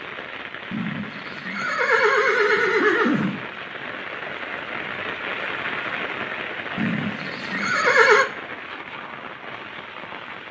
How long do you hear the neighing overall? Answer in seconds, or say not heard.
4 s.